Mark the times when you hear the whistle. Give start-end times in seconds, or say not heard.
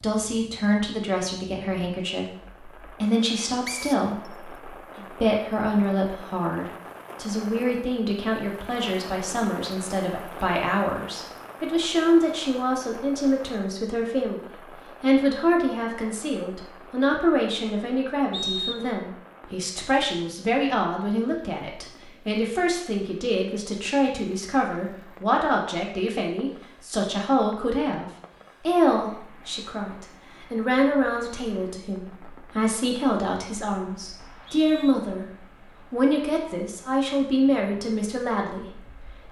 3.6-4.3, 18.3-18.9, 34.1-35.0.